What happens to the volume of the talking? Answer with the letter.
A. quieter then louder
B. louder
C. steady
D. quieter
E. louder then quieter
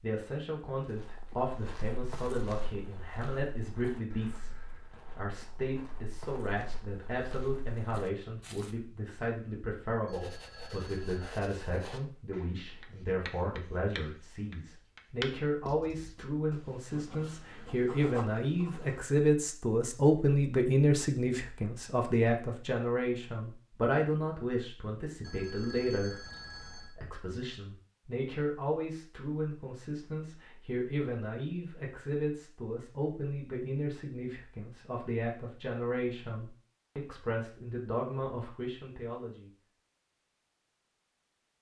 E.